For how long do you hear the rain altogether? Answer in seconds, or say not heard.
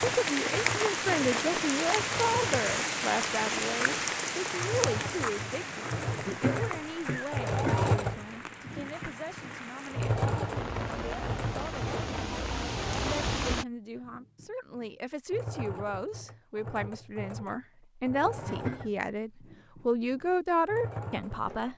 14 s.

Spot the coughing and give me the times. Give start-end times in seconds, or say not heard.
6.1-7.8, 18.4-18.9.